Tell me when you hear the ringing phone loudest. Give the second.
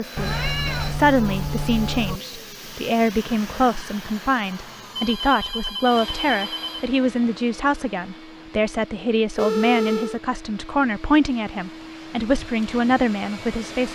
10 s.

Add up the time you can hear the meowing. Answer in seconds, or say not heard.
2 s.